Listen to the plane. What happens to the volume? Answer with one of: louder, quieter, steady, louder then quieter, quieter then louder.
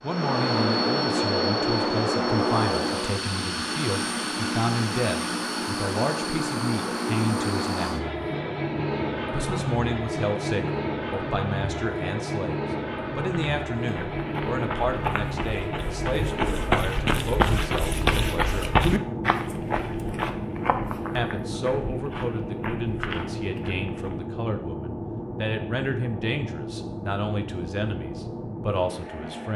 quieter.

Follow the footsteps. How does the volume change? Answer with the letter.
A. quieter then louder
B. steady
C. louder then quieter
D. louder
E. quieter
C.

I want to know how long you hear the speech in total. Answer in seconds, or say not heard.
26 s.